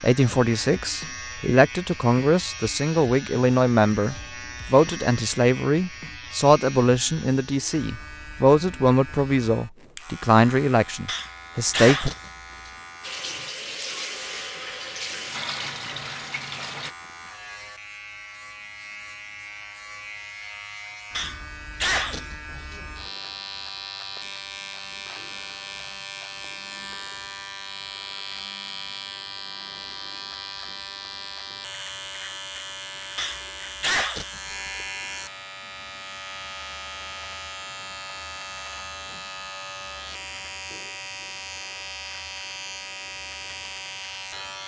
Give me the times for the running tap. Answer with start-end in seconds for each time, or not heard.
13.0-16.9.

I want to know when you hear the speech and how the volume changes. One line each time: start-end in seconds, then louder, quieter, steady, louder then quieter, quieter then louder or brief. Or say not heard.
0.0-12.1 steady.